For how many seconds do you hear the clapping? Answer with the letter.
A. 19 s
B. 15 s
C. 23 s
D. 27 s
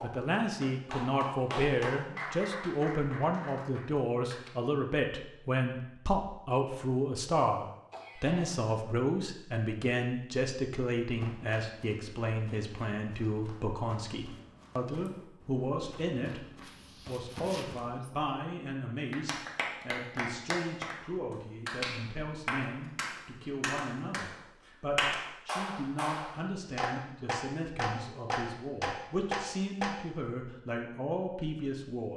B.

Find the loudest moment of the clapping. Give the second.
25 s.